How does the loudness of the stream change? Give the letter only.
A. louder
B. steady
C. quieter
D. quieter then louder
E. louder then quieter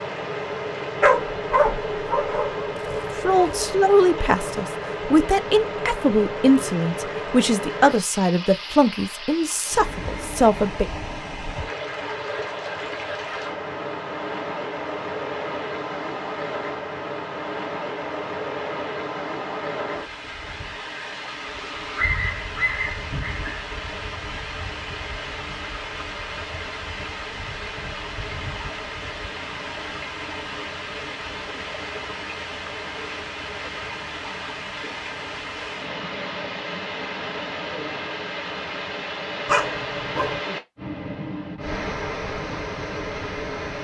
B.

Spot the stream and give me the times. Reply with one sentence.
The stream can be heard from 0.0 to 43.7 s.